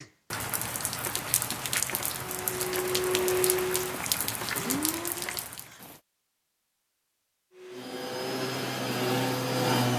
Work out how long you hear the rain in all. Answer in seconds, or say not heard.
6 s.